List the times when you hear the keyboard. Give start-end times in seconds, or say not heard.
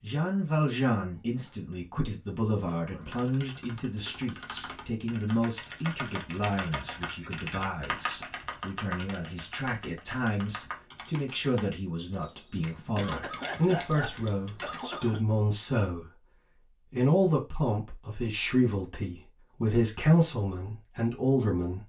3.0-14.9.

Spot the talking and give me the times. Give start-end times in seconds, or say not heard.
0.0-16.1, 16.9-21.8.